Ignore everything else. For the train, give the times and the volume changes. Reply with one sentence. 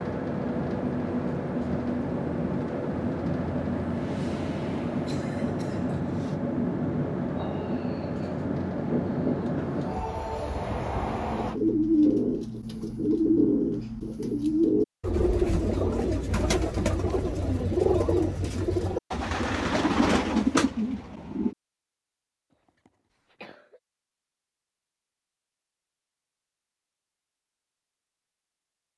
The train can be heard from 0.0 to 11.6 s, at a steady volume.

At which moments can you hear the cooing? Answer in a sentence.
You can hear the cooing from 11.0 to 21.6 s.